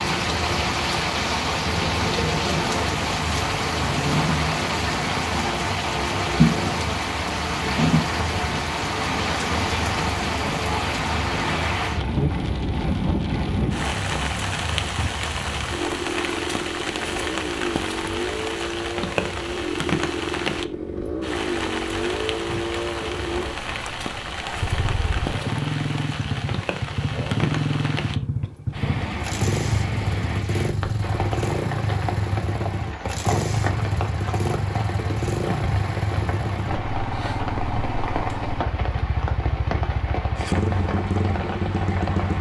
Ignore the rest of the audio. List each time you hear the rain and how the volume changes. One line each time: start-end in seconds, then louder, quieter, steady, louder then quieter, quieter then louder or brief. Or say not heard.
0.0-42.3 quieter.